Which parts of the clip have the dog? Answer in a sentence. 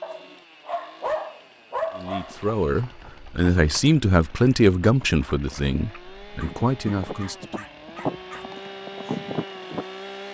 You can hear the dog from 0.0 to 2.5 s and from 6.3 to 8.5 s.